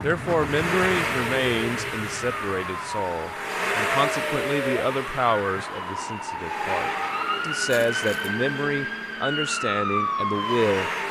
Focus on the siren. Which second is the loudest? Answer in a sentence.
The volume of the siren peaks at 10 seconds.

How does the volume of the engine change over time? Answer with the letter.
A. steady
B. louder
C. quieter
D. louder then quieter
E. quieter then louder
C.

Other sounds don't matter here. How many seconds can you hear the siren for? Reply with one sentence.
The siren can be heard for 11 seconds in total.